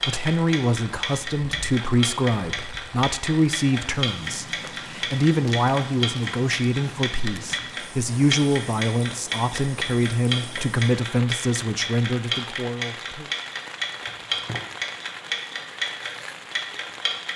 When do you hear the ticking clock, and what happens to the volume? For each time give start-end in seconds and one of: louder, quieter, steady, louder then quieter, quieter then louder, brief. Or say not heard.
0.0-17.3 steady.